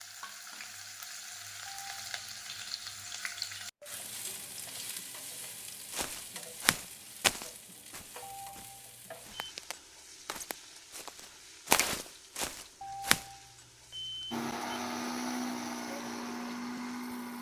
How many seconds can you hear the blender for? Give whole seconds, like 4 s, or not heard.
3 s.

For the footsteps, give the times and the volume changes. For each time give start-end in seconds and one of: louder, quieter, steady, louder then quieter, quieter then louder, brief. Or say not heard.
5.9-13.2 quieter then louder.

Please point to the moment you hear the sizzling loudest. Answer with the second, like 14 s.
3 s.